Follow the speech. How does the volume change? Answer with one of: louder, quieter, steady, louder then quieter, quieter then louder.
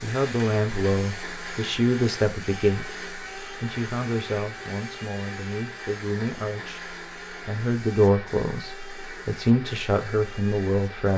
quieter then louder.